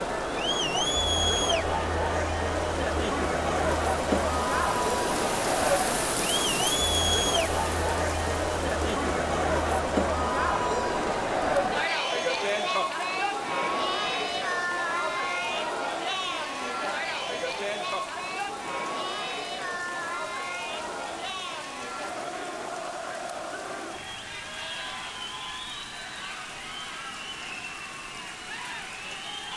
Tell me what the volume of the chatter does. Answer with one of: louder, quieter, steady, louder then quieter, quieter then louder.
quieter.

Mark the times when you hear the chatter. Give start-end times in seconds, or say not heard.
0.0-29.5.